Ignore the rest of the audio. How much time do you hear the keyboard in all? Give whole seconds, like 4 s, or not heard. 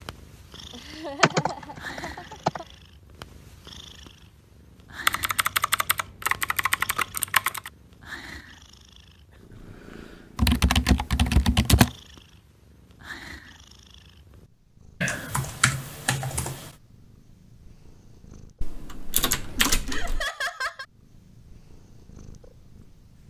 9 s.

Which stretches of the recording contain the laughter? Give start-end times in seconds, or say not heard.
0.7-2.6, 9.3-9.8, 19.9-20.9.